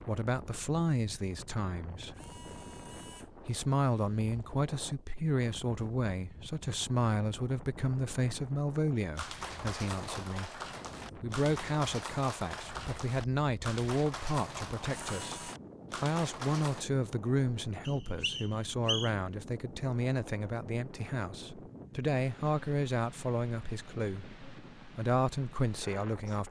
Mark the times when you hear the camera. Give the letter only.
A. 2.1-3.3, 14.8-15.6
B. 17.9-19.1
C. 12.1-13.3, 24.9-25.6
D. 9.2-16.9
A.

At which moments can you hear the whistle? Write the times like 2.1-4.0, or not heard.
17.9-19.1.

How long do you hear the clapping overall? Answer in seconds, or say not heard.
8 s.